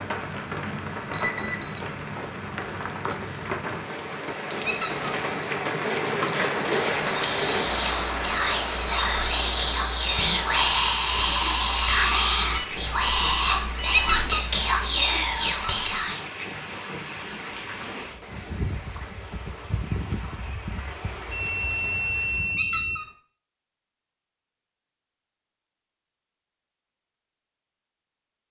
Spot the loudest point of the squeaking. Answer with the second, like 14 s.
14 s.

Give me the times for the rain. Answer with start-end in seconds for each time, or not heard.
0.0-22.6.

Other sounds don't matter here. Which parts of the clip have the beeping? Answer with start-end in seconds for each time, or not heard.
1.1-1.8, 12.6-14.2, 21.2-23.0.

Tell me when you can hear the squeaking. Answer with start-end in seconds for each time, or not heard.
4.7-5.1, 13.9-14.4, 22.6-23.1.